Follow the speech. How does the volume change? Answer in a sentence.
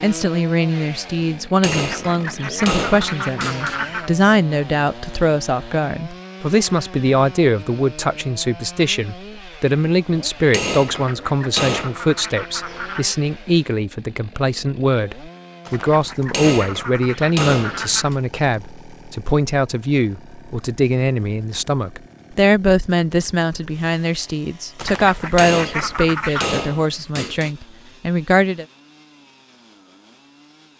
The volume of the speech stays about the same.